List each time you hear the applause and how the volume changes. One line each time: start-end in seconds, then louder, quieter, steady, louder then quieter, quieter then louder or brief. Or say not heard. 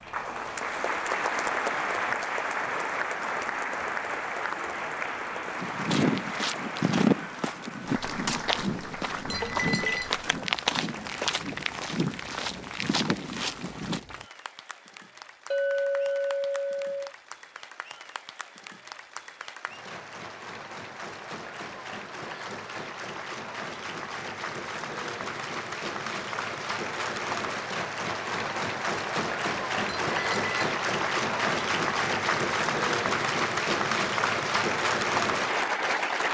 0.0-36.2 quieter then louder.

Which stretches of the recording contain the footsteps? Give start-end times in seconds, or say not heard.
5.5-14.0.